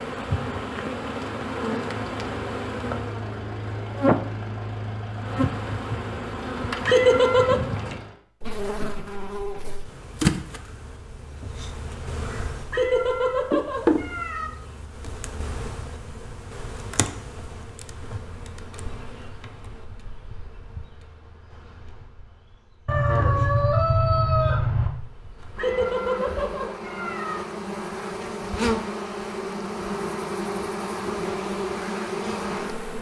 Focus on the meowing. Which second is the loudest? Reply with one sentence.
The loudest moment of the meowing is at 7 seconds.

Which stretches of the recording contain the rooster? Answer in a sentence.
The rooster can be heard from 22.9 to 24.9 s.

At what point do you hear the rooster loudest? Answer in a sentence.
The volume of the rooster peaks at 24 seconds.